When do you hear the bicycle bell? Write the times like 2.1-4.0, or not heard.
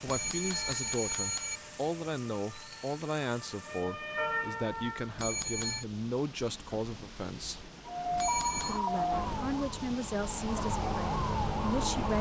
0.1-1.6, 5.2-5.8, 8.2-8.8.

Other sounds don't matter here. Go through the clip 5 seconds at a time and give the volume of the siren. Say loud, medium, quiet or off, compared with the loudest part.
medium, loud, loud.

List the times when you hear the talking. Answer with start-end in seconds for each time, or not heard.
0.0-7.7, 8.7-12.1.